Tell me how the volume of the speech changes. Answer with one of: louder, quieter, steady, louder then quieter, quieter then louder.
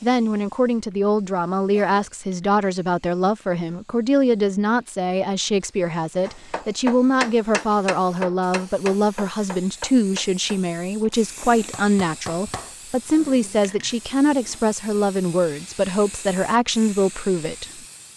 steady.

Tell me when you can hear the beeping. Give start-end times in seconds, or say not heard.
not heard.